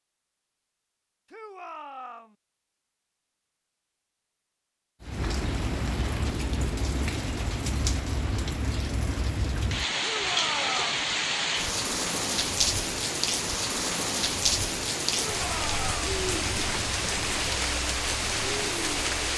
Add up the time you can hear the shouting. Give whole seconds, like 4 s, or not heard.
3 s.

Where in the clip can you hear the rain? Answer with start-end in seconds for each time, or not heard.
5.0-19.3.